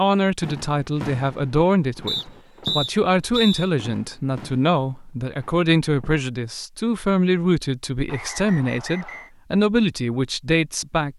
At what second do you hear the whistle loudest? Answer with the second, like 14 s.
3 s.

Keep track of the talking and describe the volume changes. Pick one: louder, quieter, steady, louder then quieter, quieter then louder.
steady.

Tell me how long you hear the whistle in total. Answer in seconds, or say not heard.
3 s.